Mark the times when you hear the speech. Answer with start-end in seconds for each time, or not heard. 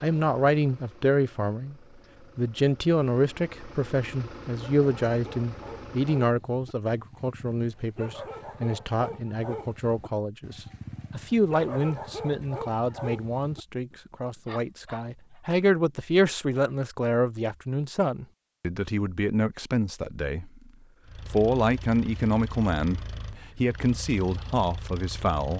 0.0-1.8, 2.4-20.6, 21.2-25.5.